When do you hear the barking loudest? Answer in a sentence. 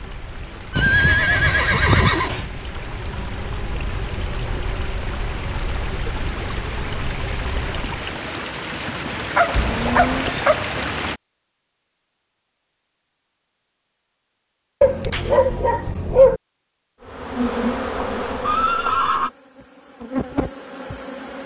The loudest moment of the barking is at 16 seconds.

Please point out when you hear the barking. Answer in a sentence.
You can hear the barking from 0.8 to 2.5 s, from 9.3 to 10.8 s and from 14.8 to 16.4 s.